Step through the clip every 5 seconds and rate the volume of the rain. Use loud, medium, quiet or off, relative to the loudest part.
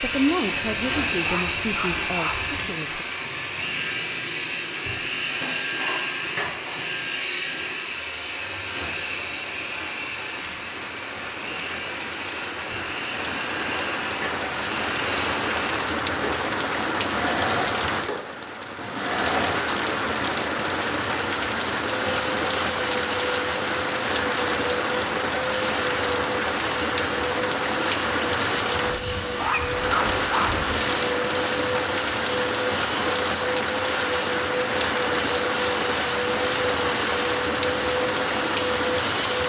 quiet, quiet, medium, loud, loud, loud, loud, loud.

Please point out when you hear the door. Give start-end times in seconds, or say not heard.
not heard.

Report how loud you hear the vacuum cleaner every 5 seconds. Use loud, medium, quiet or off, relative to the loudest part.
loud, loud, medium, loud, loud, loud, loud, loud.